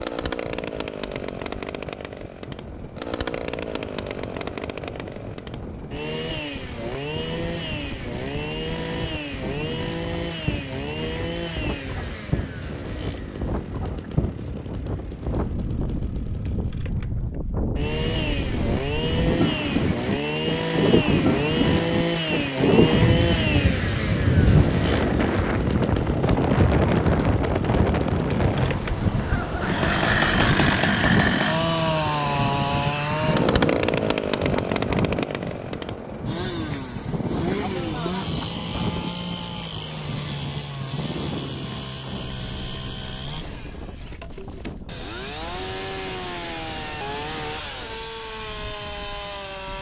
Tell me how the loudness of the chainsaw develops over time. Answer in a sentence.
The loudness of the chainsaw goes up, then down.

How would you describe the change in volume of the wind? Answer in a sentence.
The volume of the wind goes up, then down.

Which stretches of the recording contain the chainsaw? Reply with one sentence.
You can hear the chainsaw from 0.0 to 49.7 s.